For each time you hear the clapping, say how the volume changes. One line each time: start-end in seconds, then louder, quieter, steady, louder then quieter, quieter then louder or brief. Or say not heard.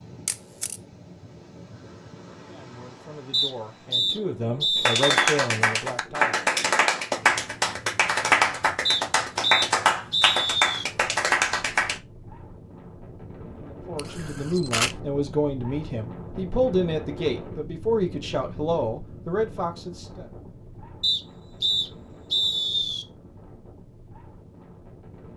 4.8-12.0 steady.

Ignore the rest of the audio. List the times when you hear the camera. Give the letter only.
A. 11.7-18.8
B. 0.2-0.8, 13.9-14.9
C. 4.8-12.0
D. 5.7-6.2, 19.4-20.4
B.